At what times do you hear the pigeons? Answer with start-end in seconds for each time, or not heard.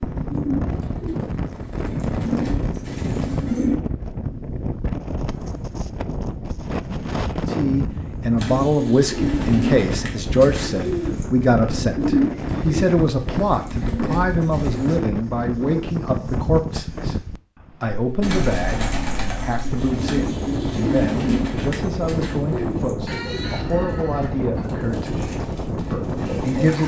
0.0-3.8, 8.3-15.0, 18.2-26.8.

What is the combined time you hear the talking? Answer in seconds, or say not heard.
19 s.